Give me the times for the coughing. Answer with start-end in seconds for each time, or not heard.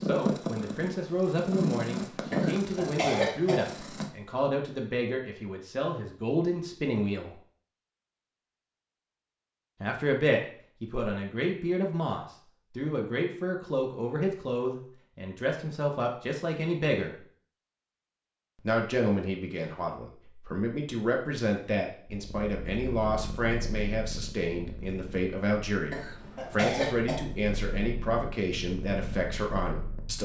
2.3-3.5, 25.9-27.1.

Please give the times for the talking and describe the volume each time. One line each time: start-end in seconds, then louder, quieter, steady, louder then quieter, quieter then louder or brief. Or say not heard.
0.0-7.3 steady
9.8-17.2 steady
18.6-30.1 steady.